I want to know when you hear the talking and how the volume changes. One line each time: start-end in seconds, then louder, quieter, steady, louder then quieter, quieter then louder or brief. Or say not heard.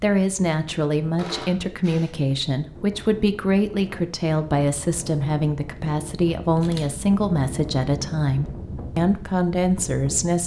0.0-10.4 steady.